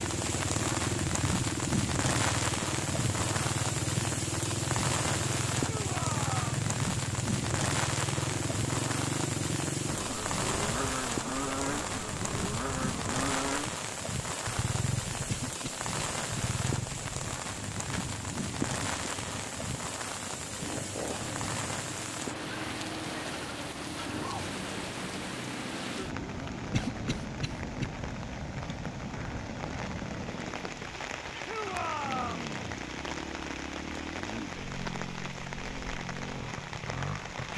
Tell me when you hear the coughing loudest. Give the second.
27 s.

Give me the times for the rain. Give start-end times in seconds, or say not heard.
0.0-37.5.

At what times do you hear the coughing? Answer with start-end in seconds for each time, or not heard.
15.2-16.4, 26.7-27.9.